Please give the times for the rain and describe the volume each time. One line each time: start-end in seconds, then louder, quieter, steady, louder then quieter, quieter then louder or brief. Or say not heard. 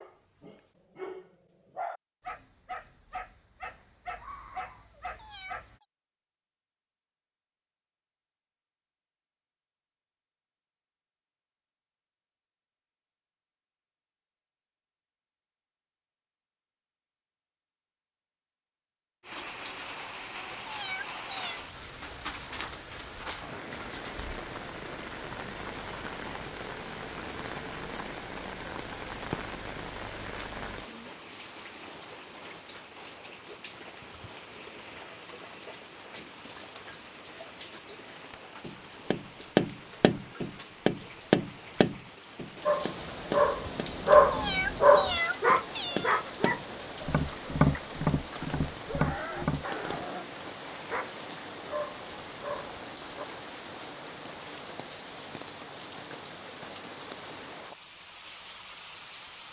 19.2-59.4 steady.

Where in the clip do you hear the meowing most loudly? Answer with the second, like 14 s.
45 s.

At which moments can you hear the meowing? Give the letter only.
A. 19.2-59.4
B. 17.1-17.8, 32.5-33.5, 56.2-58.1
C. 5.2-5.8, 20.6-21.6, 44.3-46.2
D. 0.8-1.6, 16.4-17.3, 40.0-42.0
C.